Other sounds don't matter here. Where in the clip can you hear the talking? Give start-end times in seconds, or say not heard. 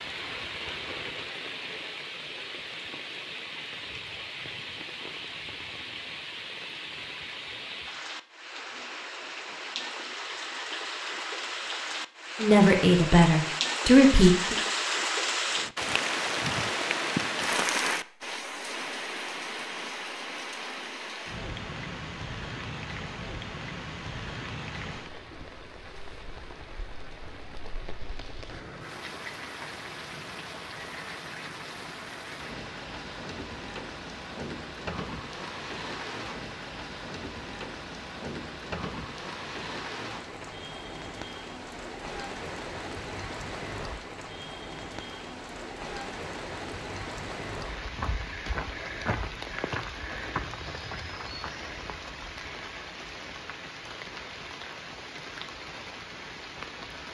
12.4-14.6.